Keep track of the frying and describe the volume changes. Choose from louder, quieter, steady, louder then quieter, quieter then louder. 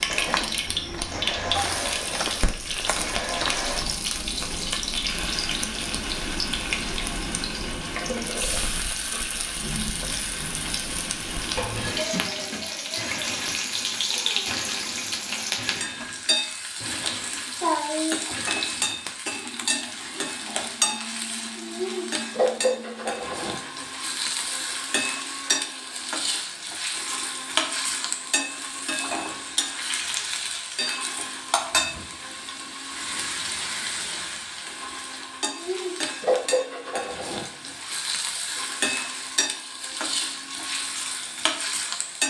steady.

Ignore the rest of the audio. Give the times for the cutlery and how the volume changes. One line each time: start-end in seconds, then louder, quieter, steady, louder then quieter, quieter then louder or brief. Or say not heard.
not heard.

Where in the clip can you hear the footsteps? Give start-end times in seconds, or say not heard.
0.1-4.2.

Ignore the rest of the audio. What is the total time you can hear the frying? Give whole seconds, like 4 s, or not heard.
42 s.